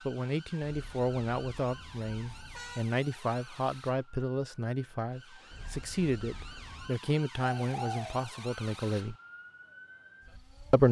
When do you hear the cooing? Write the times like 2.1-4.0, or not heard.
7.4-8.2.